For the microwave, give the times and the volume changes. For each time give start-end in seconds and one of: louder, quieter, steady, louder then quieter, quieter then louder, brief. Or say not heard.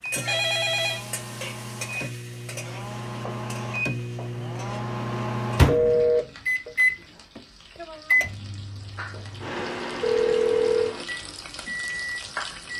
0.0-12.7 louder then quieter.